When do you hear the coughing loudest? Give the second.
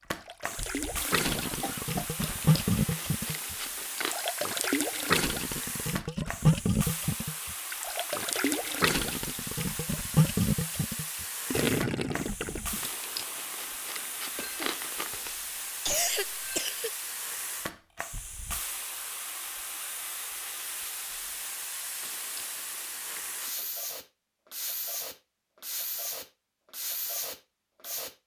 16 s.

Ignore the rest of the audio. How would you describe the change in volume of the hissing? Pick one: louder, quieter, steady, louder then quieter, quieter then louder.
steady.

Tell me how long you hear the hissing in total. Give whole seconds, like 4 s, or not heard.
28 s.